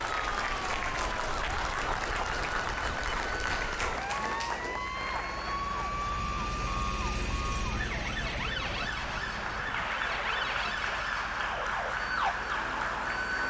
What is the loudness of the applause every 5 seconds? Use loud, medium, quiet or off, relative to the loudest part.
loud, medium, loud.